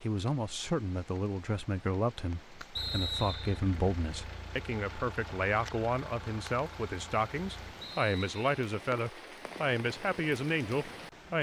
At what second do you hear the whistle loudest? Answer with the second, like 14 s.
3 s.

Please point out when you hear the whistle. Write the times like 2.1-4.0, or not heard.
2.8-3.6, 7.8-8.4.